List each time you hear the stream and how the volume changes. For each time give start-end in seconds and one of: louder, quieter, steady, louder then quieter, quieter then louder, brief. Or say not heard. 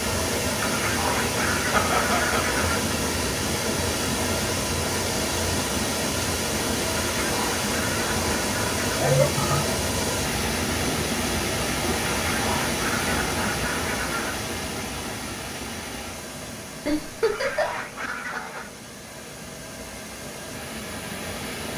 0.0-21.7 quieter.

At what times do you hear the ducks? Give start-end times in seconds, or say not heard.
0.6-2.9, 7.0-9.1, 12.1-14.4, 17.2-18.7.